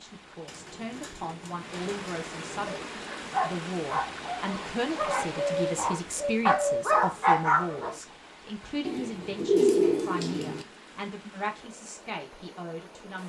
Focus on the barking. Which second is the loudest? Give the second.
7 s.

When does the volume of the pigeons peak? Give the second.
10 s.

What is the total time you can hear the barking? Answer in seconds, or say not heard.
5 s.